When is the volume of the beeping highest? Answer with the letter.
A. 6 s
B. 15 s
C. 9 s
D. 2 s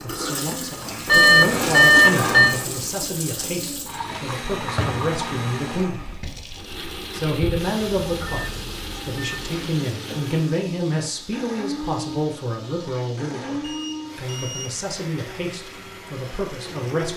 D.